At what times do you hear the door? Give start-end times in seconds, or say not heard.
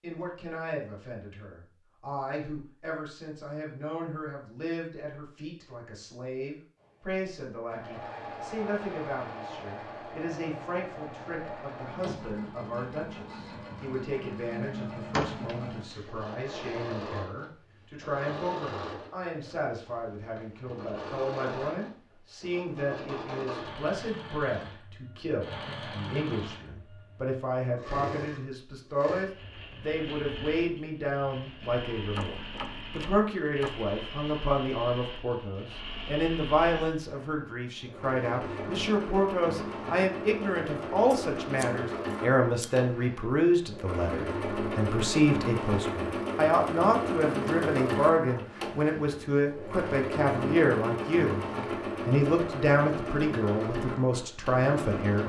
15.1-16.1, 32.1-33.9.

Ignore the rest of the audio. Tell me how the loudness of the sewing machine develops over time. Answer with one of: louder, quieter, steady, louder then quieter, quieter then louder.
louder.